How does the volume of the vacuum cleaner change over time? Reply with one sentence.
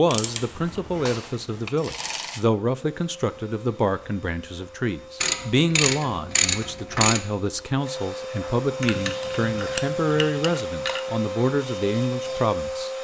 The volume of the vacuum cleaner goes up.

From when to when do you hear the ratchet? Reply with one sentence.
You can hear the ratchet from 0.1 to 2.4 s, from 5.2 to 7.2 s and from 8.8 to 11.0 s.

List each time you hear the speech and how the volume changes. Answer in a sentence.
The speech can be heard from 0.0 to 12.9 s, at a steady volume.